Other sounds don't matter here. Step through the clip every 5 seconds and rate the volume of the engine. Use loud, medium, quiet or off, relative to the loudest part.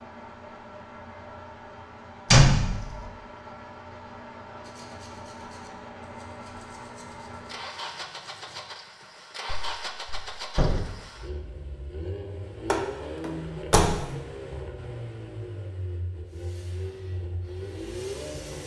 medium, loud, loud, loud.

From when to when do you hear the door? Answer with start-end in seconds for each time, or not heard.
2.3-3.0, 9.4-10.8, 12.7-14.1.